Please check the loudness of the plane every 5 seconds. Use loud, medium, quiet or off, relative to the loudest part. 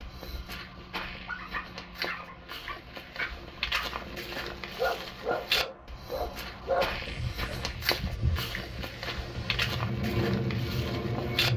quiet, medium, loud.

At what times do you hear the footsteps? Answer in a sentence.
The footsteps can be heard from 0.0 to 11.5 s.